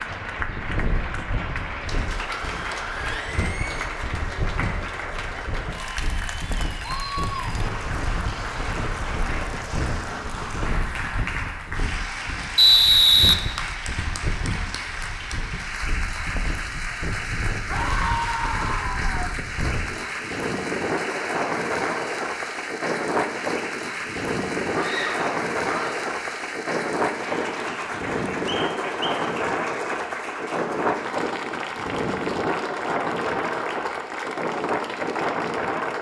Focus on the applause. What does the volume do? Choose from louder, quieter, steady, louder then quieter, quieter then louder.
steady.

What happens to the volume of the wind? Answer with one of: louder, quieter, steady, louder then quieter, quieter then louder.
louder.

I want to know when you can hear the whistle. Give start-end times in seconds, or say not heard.
12.6-13.3, 28.4-29.1.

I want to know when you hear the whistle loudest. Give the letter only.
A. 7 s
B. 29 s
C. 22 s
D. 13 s
D.